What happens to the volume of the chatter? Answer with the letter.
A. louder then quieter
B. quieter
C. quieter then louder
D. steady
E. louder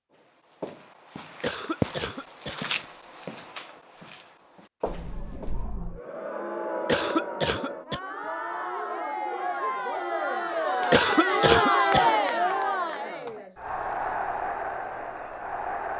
A.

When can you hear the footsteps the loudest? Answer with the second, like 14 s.
2 s.